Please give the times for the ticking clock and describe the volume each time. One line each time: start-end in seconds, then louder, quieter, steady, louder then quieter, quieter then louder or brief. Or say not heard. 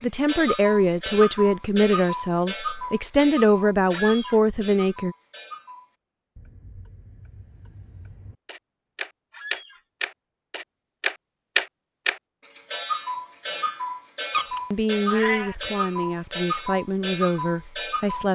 0.0-18.3 quieter then louder.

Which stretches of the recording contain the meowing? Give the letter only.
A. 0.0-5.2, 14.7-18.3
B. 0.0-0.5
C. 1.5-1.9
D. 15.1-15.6
D.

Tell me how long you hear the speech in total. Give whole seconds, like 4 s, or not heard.
9 s.